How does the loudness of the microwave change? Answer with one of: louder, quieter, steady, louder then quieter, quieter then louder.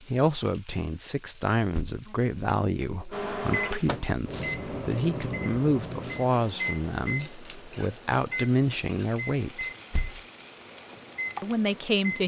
quieter.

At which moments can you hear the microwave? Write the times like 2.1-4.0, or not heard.
3.1-12.2.